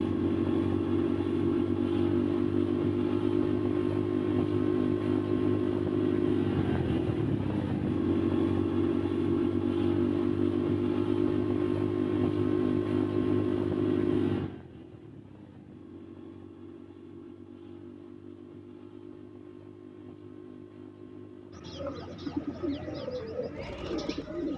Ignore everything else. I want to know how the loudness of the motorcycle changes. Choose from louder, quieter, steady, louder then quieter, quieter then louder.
quieter.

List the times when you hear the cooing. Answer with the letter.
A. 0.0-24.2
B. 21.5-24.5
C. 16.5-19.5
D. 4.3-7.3
B.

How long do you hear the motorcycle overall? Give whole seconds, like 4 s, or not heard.
24 s.